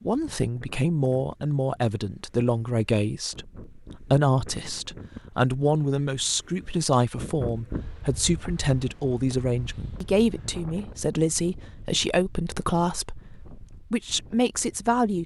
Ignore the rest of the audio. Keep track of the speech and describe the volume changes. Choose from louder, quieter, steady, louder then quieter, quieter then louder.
steady.